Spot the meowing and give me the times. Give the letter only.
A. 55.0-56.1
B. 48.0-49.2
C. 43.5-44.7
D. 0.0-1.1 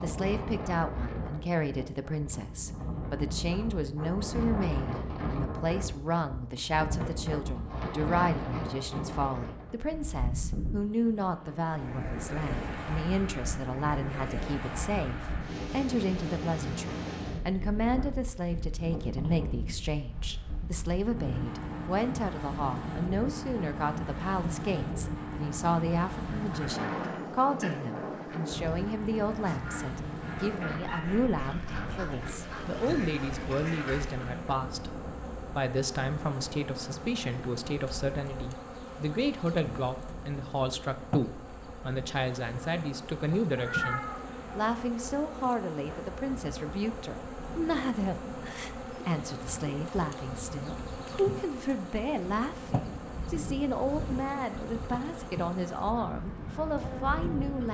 C.